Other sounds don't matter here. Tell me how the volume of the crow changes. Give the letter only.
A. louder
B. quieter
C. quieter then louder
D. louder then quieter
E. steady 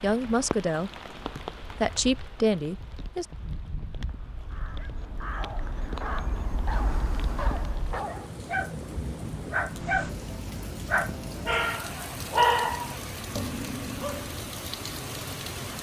A.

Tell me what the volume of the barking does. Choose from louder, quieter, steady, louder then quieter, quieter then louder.
louder.